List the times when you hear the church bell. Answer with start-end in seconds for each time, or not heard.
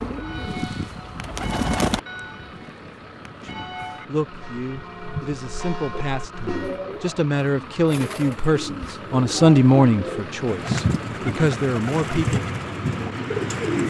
0.1-6.8.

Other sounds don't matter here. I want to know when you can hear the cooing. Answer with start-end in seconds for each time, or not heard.
0.0-2.0, 5.9-13.8.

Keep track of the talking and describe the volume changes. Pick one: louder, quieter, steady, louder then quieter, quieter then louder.
louder then quieter.